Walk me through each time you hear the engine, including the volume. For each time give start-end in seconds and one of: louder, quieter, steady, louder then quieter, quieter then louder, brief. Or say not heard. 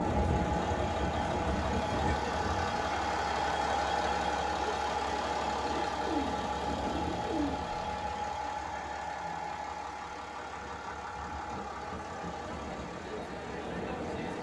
0.0-14.3 quieter.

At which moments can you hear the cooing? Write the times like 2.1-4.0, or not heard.
5.7-7.6.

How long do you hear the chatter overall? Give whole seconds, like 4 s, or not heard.
14 s.